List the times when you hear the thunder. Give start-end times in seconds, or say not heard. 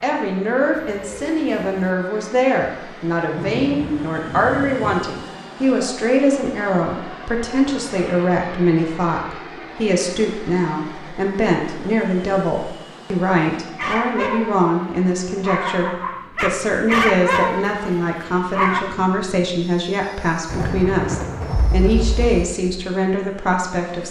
3.3-5.0, 20.4-22.4.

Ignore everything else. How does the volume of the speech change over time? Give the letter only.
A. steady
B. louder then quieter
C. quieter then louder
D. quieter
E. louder
A.